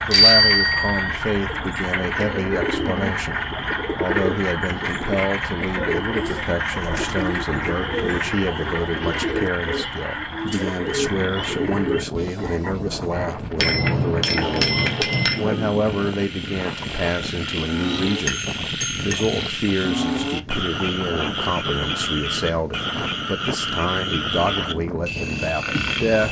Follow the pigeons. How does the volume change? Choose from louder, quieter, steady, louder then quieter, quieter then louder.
steady.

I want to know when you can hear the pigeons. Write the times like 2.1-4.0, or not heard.
1.4-12.1.